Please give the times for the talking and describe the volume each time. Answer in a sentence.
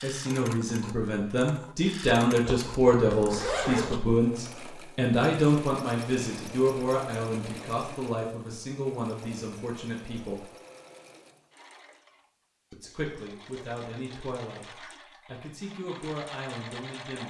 The talking can be heard from 0.0 to 10.4 s, getting quieter; and from 12.7 to 17.2 s, getting quieter then louder.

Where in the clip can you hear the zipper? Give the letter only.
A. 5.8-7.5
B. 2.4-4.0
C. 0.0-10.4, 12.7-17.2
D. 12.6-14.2
B.